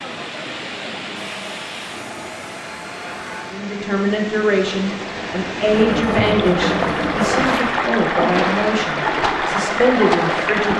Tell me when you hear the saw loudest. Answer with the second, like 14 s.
7 s.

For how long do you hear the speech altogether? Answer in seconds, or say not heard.
7 s.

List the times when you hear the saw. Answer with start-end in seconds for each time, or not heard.
1.1-3.6, 5.7-7.5.